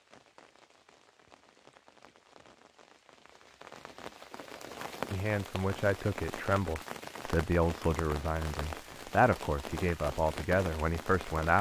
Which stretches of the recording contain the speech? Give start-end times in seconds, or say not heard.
5.1-11.5.